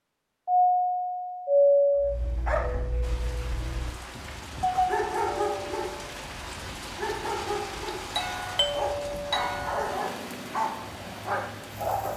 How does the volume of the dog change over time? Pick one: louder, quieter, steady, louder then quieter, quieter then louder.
steady.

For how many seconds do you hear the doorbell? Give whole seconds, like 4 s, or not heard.
5 s.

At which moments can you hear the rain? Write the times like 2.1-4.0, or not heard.
3.0-12.1.